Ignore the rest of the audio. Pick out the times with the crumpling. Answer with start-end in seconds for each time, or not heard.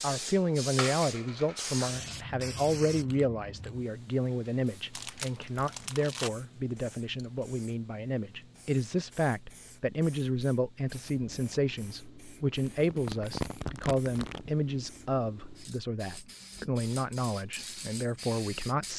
4.9-6.3, 12.7-14.6.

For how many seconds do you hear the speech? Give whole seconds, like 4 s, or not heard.
19 s.